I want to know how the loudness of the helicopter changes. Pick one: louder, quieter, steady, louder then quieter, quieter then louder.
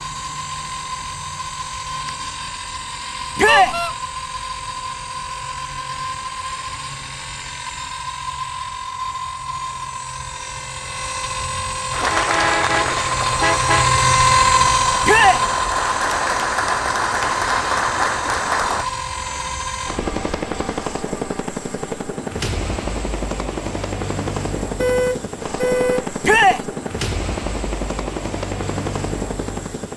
louder then quieter.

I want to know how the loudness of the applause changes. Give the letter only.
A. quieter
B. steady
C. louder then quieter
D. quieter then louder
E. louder
D.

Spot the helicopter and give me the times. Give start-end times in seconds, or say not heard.
0.0-29.9.